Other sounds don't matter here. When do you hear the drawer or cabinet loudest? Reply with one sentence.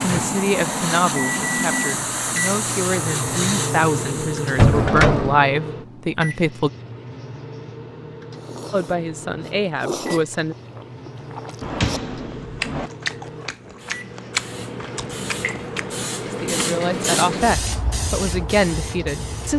The volume of the drawer or cabinet peaks at 5 seconds.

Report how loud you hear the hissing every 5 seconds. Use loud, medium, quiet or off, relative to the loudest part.
loud, off, medium, loud.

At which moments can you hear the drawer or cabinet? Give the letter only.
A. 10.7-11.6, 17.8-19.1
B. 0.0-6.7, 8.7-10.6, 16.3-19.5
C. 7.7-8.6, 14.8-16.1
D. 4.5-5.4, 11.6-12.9
D.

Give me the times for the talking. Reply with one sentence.
You can hear the talking from 0.0 to 6.7 s, from 8.7 to 10.6 s and from 16.3 to 19.5 s.